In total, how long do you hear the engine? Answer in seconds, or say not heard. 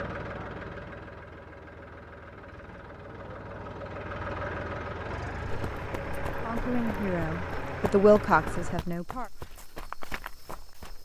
9 s.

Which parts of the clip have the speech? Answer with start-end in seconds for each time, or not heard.
6.4-9.3.